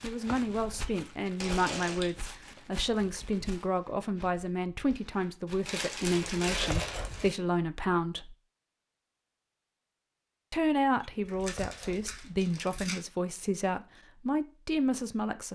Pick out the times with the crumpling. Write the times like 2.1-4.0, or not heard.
1.4-2.1, 5.7-7.3, 11.2-13.0.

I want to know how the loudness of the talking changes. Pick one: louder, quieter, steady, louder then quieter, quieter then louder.
steady.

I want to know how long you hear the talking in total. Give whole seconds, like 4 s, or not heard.
13 s.